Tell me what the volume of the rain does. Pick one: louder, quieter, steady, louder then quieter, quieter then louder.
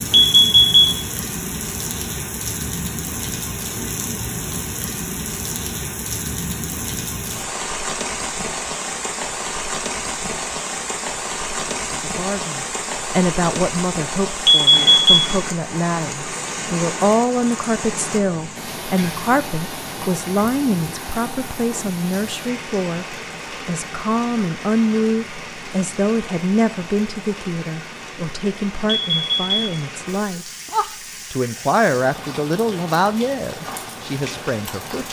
quieter.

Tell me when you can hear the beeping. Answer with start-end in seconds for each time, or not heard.
0.1-1.0, 14.4-15.3, 28.9-29.6.